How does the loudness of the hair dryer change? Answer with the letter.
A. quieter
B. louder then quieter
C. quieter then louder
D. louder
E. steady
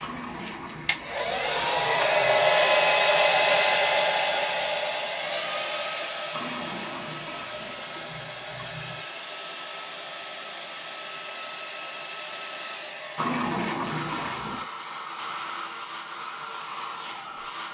A.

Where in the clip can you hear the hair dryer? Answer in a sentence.
The hair dryer can be heard from 0.0 to 17.6 s.